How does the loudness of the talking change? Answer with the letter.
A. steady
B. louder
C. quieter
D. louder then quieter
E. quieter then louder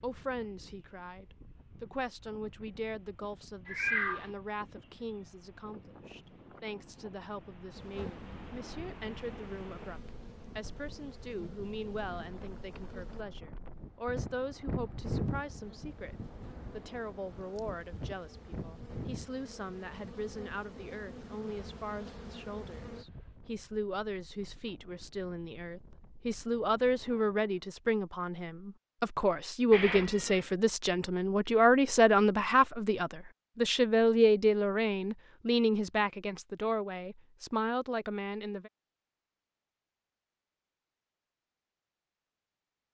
B.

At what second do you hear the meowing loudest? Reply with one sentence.
The loudest moment of the meowing is at 4 seconds.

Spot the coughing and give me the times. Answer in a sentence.
You can't hear the coughing here.